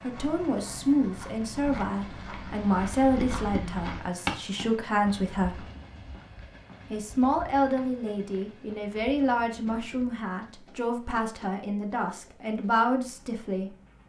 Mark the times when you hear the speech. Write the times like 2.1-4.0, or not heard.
0.0-5.7, 6.9-13.8.